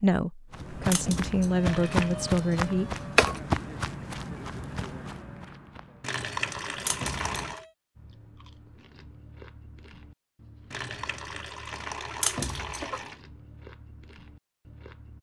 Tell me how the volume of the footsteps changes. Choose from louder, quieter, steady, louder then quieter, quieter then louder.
quieter.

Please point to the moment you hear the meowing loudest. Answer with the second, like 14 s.
3 s.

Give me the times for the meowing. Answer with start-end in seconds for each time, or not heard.
0.9-3.4, 6.8-7.7, 12.2-12.8.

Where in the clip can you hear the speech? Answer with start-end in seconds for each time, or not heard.
0.0-3.0.